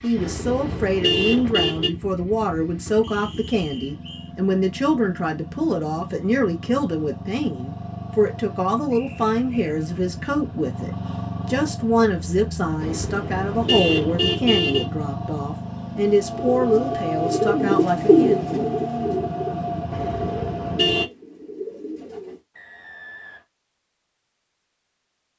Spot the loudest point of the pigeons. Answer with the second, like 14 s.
18 s.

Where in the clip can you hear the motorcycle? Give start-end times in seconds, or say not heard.
0.0-21.1.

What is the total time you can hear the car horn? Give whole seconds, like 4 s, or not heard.
5 s.